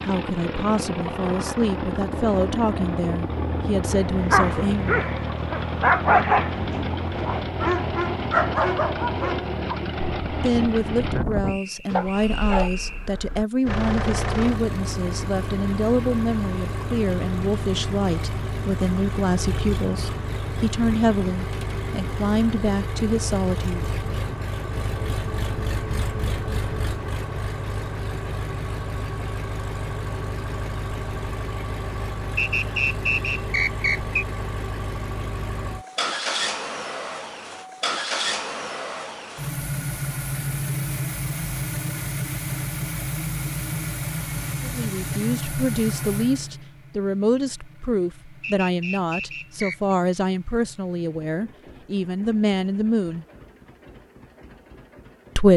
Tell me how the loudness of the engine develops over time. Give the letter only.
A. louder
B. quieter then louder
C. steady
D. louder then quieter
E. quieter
E.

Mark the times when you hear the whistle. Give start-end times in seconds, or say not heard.
11.4-13.1, 32.4-34.2, 48.4-50.0.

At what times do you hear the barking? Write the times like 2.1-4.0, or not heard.
3.9-12.7.